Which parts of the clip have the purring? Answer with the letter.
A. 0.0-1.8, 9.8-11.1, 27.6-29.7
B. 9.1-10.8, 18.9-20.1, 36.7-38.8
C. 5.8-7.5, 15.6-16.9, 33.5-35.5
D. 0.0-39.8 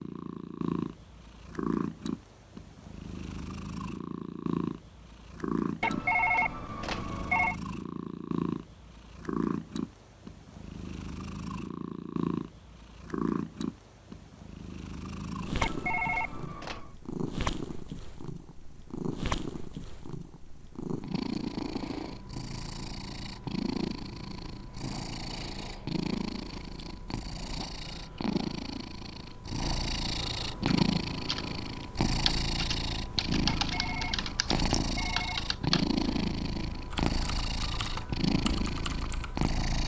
D.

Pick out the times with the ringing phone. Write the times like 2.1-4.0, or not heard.
5.8-7.5, 15.6-16.9, 33.5-35.5.